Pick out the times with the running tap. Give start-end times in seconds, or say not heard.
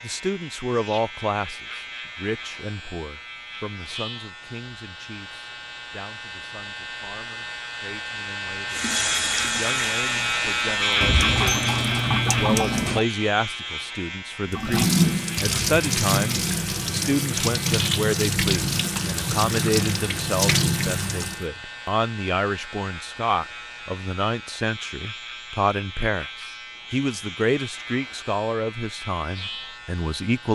8.7-13.0, 14.5-21.4.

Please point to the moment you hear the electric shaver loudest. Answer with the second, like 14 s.
11 s.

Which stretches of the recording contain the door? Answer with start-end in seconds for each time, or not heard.
11.0-13.0.